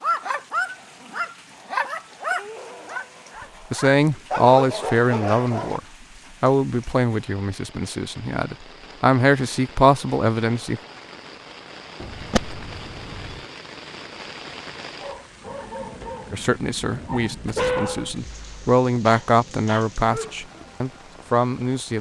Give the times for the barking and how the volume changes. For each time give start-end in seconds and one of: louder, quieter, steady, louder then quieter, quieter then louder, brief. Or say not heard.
0.0-5.8 quieter then louder
14.9-20.8 louder then quieter.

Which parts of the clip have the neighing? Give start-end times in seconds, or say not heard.
12.0-13.4.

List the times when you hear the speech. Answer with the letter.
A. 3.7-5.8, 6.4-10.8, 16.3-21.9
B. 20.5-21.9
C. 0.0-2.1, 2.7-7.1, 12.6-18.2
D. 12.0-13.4
A.